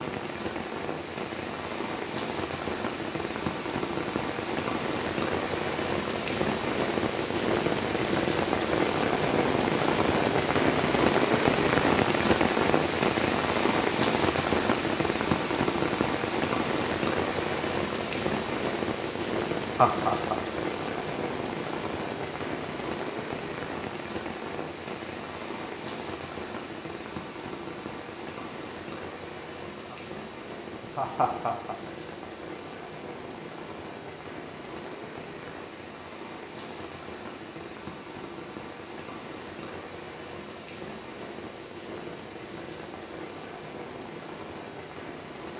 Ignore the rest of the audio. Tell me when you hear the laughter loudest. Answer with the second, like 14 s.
20 s.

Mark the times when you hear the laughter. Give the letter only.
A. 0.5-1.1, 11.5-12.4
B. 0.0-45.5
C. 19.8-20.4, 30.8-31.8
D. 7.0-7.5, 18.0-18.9
C.